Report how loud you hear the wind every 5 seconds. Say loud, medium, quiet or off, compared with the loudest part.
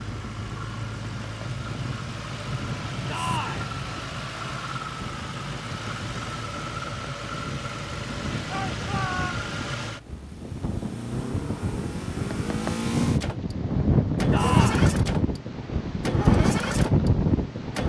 quiet, quiet, loud, loud.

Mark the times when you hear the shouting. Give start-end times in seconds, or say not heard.
3.0-3.7, 8.4-9.4, 14.3-14.9.